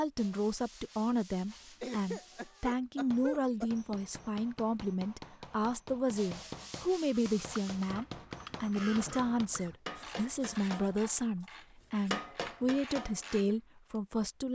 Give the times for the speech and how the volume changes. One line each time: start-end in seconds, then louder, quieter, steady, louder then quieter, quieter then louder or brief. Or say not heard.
0.0-14.5 steady.